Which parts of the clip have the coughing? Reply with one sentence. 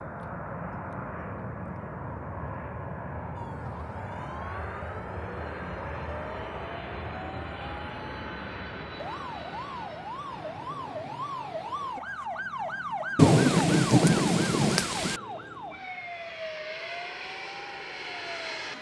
You can't hear the coughing here.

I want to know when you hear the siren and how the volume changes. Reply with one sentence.
You can hear the siren from 3.4 to 18.6 s, getting louder then quieter.